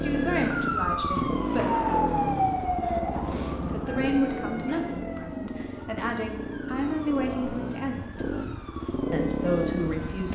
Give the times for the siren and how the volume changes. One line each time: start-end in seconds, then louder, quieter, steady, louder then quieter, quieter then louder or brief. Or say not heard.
0.0-10.2 quieter.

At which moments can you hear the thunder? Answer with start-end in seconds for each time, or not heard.
1.6-5.0.